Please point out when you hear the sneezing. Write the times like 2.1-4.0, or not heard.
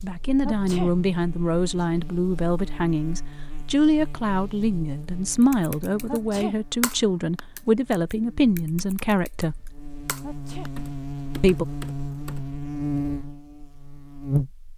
0.4-0.9, 6.0-6.5, 10.2-10.7.